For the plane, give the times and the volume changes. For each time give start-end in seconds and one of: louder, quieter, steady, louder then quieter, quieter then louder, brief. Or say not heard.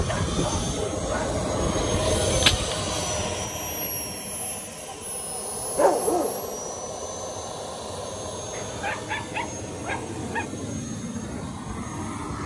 0.0-12.4 quieter.